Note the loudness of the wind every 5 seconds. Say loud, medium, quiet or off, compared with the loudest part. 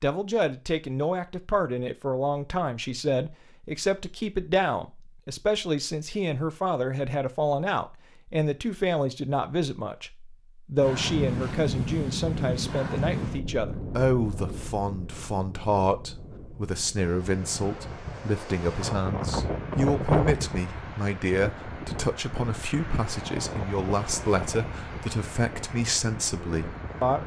off, off, loud, loud, loud, medium.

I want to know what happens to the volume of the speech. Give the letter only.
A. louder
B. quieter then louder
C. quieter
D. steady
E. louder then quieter
D.